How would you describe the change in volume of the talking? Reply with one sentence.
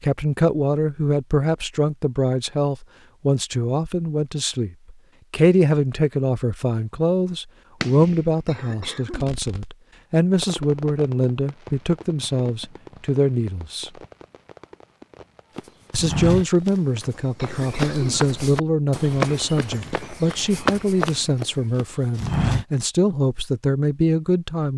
The volume of the talking stays about the same.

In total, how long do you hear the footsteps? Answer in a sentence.
The footsteps can be heard for 7 seconds in total.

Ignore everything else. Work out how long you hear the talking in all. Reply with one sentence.
The talking can be heard for 23 seconds in total.